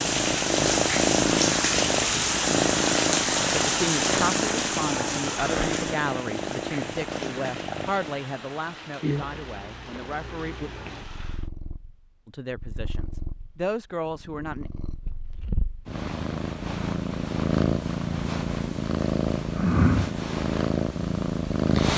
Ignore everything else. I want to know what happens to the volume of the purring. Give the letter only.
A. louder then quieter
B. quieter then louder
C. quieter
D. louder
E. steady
B.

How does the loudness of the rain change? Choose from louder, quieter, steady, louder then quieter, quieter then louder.
quieter.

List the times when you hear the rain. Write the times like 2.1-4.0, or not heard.
0.0-11.5.